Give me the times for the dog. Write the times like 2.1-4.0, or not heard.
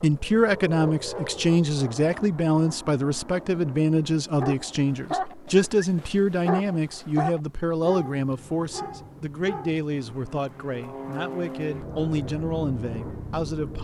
4.3-9.9.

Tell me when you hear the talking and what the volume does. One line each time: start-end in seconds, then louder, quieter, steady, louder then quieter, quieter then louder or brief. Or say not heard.
0.0-13.7 quieter.